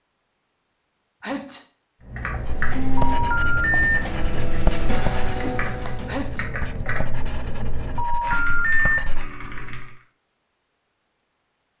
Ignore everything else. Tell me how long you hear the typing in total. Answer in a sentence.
You can hear the typing for 8 seconds altogether.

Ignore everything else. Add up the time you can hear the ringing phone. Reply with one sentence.
You can hear the ringing phone for 2 seconds altogether.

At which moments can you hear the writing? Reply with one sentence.
The writing can be heard from 2.4 to 9.3 s.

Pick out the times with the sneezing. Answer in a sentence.
The sneezing can be heard from 1.2 to 1.6 s and from 6.0 to 6.5 s.